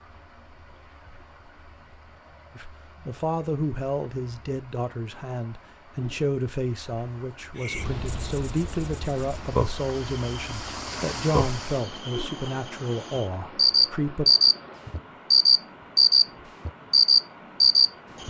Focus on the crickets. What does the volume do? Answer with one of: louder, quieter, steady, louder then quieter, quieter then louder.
louder.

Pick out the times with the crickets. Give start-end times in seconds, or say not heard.
7.5-18.2.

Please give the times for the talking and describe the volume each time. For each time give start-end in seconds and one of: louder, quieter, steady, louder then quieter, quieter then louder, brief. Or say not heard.
2.5-14.2 steady.